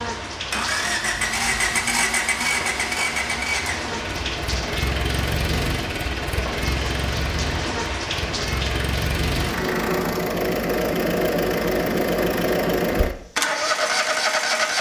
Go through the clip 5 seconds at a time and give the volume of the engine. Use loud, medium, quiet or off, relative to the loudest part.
loud, medium, loud.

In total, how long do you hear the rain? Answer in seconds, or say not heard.
10 s.